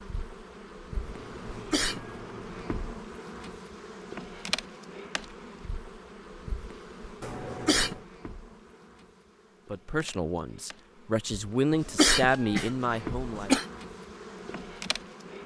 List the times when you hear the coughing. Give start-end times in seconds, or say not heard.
1.5-2.0, 7.4-8.0, 11.7-13.7.